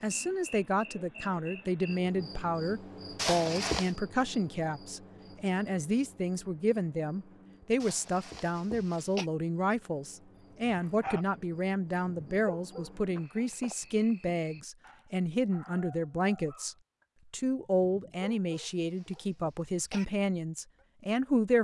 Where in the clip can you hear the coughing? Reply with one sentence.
The coughing can be heard from 3.1 to 4.0 s, from 7.8 to 9.3 s and from 18.6 to 20.1 s.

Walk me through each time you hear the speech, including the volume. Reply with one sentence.
The speech can be heard from 0.0 to 21.5 s, at a steady volume.